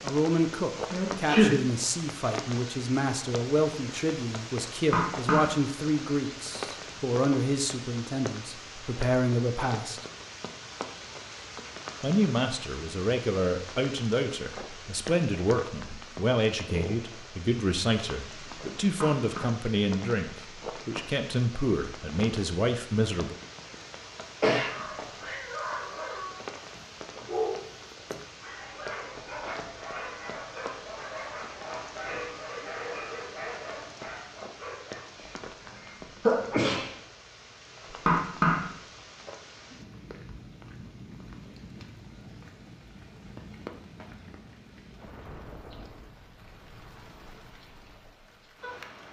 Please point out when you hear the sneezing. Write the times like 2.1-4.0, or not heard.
0.9-1.6, 24.4-25.4, 35.1-37.0.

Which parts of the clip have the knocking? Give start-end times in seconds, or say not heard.
4.8-5.5, 19.0-19.4, 37.9-38.7.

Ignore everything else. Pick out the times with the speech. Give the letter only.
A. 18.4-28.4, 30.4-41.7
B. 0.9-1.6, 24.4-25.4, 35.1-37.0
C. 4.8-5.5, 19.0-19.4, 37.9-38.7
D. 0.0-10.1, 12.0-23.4
D.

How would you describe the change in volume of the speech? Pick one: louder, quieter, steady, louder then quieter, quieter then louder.
steady.